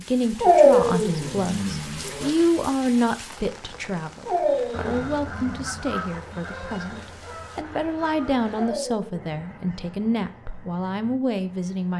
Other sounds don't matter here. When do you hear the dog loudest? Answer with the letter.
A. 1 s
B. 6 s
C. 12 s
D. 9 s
A.